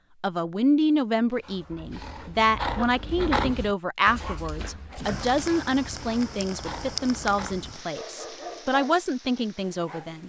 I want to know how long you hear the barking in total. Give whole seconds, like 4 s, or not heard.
9 s.